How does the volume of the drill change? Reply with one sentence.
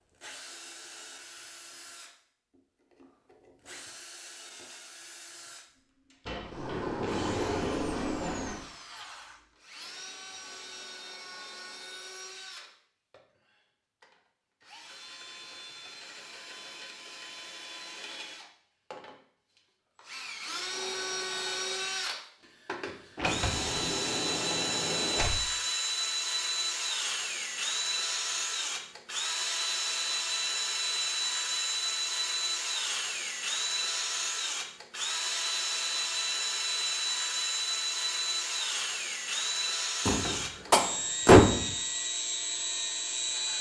The loudness of the drill goes up.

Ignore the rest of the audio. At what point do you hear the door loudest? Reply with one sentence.
The volume of the door peaks at 41 seconds.